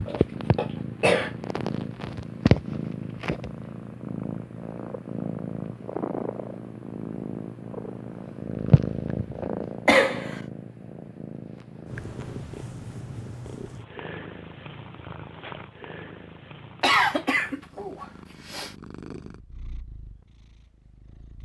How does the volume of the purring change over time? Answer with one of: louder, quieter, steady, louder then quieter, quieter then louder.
quieter.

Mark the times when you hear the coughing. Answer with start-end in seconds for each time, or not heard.
0.1-1.3, 9.8-10.4, 16.8-18.8.